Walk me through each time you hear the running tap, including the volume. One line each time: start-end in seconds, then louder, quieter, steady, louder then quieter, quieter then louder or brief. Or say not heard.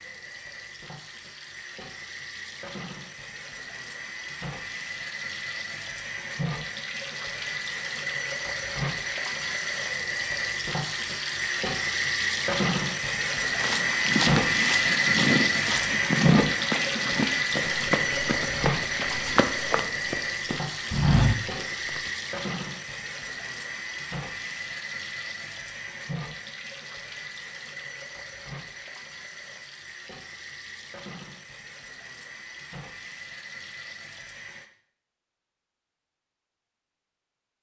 0.0-34.7 louder then quieter.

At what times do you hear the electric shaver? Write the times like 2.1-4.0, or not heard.
not heard.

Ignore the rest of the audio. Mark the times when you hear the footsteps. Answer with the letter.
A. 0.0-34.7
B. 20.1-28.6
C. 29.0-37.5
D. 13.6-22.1
D.